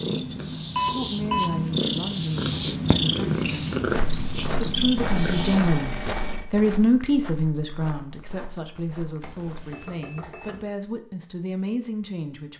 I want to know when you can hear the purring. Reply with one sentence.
You can hear the purring from 0.0 to 5.7 s.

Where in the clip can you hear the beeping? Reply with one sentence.
You can hear the beeping from 0.8 to 1.5 s, from 5.0 to 6.5 s and from 9.2 to 10.6 s.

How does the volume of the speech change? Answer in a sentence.
The loudness of the speech goes up, then down.